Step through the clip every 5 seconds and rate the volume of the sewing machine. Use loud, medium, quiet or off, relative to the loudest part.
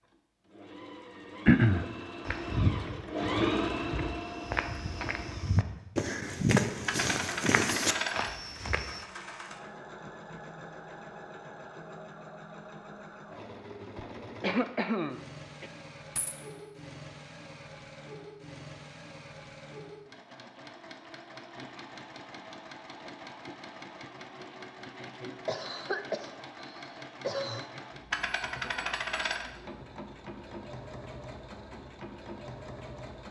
loud, medium, medium, medium, medium, medium, medium.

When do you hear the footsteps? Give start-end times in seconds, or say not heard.
2.2-9.1.